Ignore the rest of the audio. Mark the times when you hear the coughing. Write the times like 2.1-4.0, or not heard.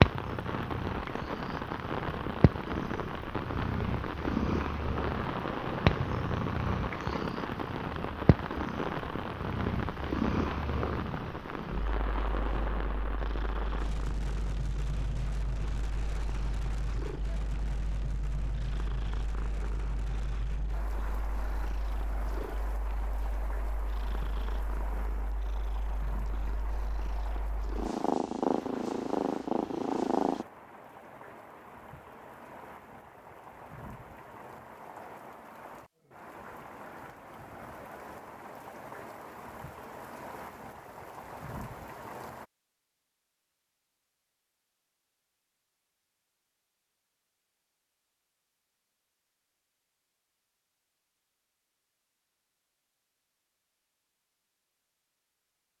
not heard.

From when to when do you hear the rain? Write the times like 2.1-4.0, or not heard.
0.0-42.5.